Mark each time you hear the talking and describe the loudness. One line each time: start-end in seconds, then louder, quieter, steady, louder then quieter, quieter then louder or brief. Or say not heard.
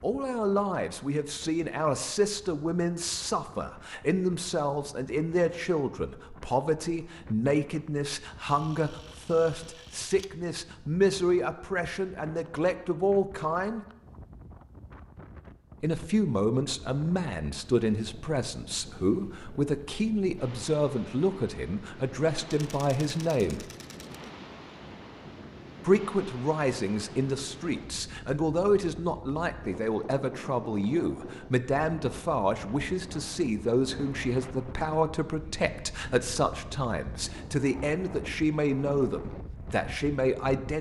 0.0-13.8 steady
15.8-23.6 steady
25.9-40.7 steady.